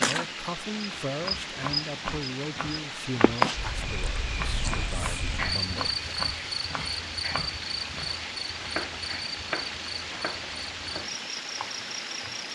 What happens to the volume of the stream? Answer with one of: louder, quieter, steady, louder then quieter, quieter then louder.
steady.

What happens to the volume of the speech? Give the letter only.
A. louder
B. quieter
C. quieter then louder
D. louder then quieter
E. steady
B.